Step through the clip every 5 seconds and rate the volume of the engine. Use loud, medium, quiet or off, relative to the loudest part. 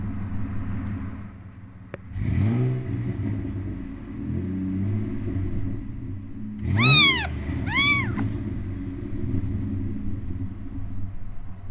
loud, loud, medium.